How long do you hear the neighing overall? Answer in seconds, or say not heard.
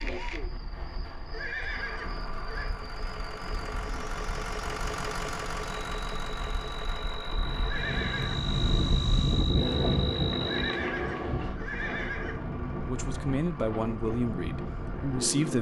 4 s.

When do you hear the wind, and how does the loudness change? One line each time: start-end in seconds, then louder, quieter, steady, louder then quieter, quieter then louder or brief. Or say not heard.
0.0-15.5 louder then quieter.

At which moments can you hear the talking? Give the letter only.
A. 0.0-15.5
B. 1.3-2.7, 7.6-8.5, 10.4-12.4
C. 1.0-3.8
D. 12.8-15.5
D.